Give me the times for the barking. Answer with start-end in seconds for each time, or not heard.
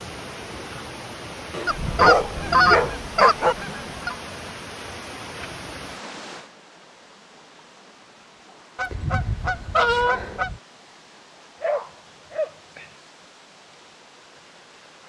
1.5-3.5, 11.6-12.9.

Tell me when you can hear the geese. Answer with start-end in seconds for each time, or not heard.
1.6-4.2, 8.8-10.6.